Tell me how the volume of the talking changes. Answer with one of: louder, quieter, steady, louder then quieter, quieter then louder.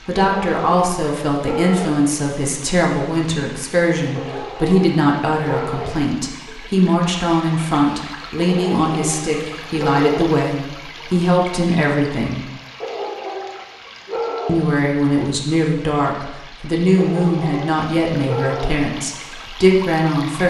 steady.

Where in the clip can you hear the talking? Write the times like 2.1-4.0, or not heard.
0.1-12.4, 14.4-20.4.